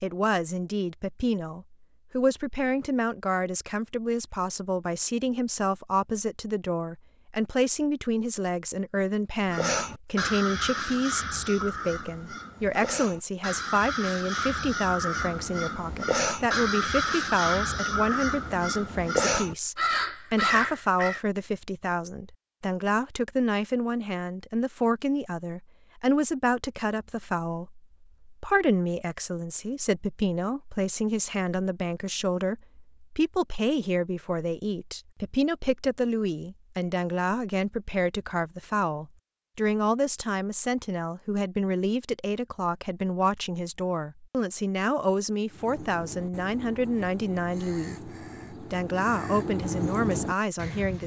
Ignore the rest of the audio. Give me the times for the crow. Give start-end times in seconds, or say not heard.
9.4-21.2, 45.5-51.0.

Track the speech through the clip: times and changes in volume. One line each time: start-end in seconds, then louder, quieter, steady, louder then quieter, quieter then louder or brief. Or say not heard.
0.0-51.0 steady.